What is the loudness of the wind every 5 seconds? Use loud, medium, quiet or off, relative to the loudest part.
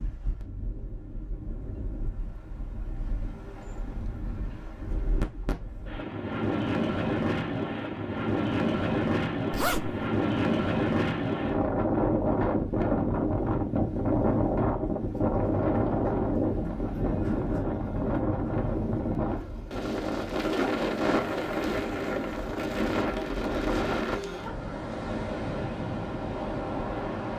quiet, loud, loud, loud, loud, medium.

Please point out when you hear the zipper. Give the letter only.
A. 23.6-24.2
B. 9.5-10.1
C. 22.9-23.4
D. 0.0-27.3
B.